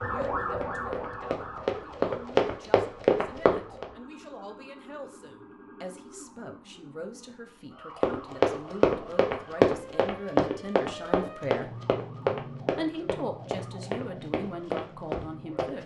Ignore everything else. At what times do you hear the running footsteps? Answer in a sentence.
You can hear the running footsteps from 0.1 to 3.9 s and from 8.0 to 15.7 s.